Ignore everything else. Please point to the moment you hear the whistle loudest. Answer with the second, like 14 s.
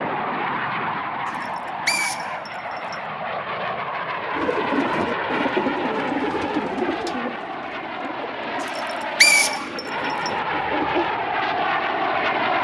9 s.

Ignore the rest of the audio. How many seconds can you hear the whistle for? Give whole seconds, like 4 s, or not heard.
3 s.